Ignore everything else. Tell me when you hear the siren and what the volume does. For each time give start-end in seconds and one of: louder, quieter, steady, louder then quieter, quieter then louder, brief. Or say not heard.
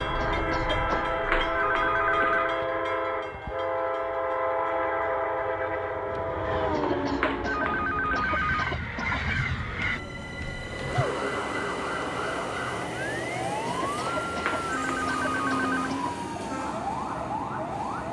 0.0-2.4 brief
9.2-18.0 steady.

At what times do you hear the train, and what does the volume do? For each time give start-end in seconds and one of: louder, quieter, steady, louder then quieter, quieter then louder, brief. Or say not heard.
0.0-18.0 quieter.